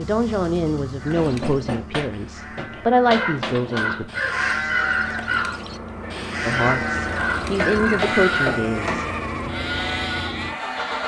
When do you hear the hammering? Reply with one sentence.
You can hear the hammering from 1.1 to 4.0 s and from 7.5 to 9.2 s.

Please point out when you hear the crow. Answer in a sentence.
The crow can be heard from 2.7 to 8.6 s.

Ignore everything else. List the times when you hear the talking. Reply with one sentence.
You can hear the talking from 0.0 to 4.0 s and from 6.5 to 9.1 s.